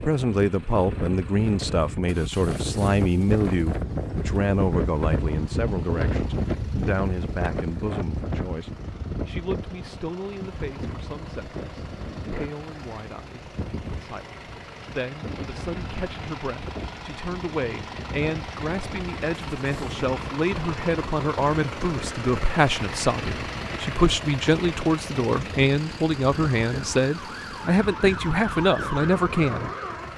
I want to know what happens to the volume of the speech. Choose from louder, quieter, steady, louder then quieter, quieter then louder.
quieter then louder.